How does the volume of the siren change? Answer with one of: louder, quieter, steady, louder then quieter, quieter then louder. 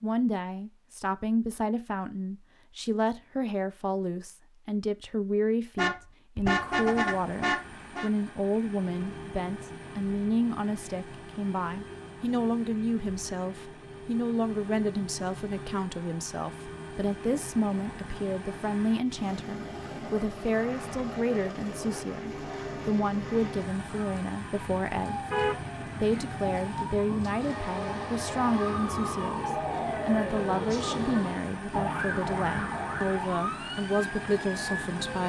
louder.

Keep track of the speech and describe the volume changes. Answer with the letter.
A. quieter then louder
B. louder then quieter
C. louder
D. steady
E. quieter
D.